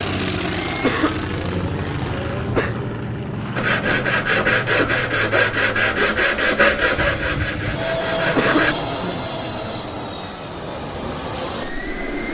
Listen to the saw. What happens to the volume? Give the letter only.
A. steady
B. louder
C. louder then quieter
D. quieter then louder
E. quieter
E.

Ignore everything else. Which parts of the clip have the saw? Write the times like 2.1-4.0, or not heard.
3.5-8.8.